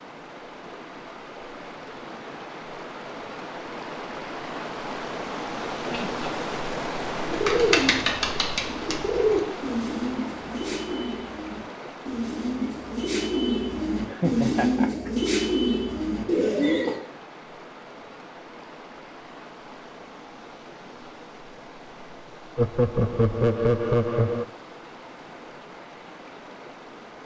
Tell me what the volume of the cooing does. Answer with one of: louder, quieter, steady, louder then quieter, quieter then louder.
quieter then louder.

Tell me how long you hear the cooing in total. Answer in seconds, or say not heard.
10 s.